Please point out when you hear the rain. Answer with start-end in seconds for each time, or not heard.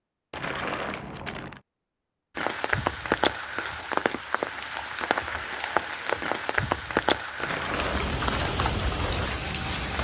2.4-10.0.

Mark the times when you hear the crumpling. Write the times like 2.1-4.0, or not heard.
0.3-1.6, 7.3-8.6.